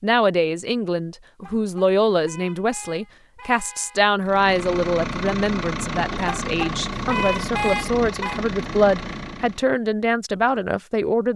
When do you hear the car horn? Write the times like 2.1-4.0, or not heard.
1.4-4.0, 6.2-8.4.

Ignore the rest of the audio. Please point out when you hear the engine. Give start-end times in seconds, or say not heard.
4.2-9.7.